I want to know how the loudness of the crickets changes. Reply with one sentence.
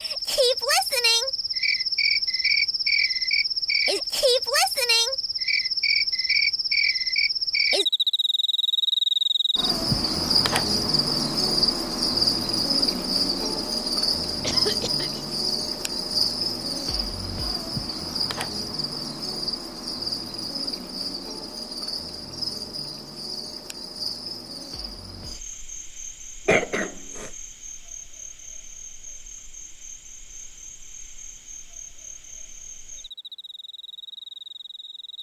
The volume of the crickets goes down.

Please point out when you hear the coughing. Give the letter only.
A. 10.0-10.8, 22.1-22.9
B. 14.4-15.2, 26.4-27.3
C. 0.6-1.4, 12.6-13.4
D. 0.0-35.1
B.